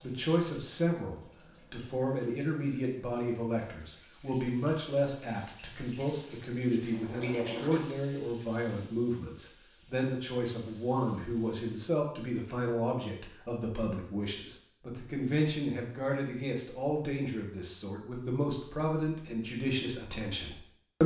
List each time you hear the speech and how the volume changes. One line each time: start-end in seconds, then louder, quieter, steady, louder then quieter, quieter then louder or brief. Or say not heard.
0.0-21.0 steady.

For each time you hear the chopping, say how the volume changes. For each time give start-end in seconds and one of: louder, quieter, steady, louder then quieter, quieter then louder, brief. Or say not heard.
not heard.